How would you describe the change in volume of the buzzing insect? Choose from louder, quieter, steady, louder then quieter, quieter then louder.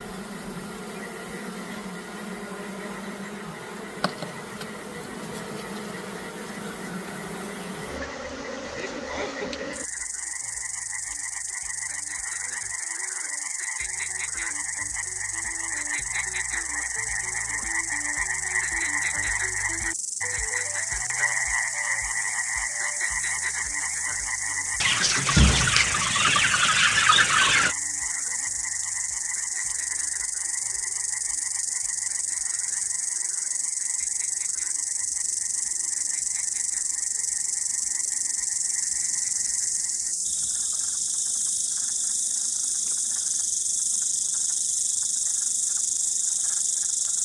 louder.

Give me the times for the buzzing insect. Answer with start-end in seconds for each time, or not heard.
0.0-47.2.